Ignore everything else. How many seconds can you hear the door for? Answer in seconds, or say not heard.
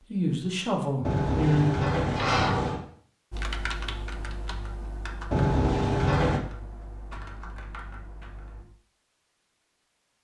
3 s.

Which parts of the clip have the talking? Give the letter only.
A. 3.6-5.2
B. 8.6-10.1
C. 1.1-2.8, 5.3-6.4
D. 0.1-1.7
D.